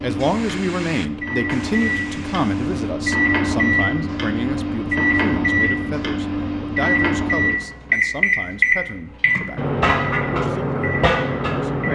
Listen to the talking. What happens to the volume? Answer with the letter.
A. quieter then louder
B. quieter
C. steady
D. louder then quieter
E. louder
B.